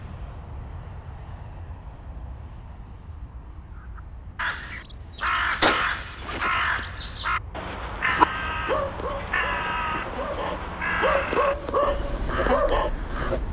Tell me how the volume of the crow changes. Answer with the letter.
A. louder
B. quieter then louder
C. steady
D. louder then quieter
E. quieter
E.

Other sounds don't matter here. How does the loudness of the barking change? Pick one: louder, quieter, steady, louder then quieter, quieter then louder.
quieter then louder.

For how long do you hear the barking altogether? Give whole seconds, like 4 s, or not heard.
5 s.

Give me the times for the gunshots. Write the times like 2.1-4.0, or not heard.
5.6-6.3.